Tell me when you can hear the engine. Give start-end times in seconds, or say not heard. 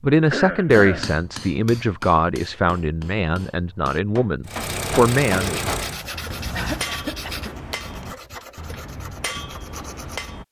4.5-6.9.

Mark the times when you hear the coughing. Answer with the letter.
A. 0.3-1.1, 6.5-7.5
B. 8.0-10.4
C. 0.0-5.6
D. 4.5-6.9
A.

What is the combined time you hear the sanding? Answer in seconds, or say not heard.
6 s.